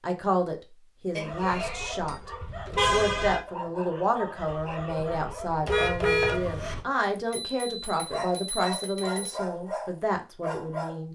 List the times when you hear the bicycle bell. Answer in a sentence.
The bicycle bell can be heard from 1.1 to 2.2 s and from 7.2 to 9.4 s.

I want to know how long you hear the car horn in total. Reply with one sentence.
The car horn can be heard for 2 seconds in total.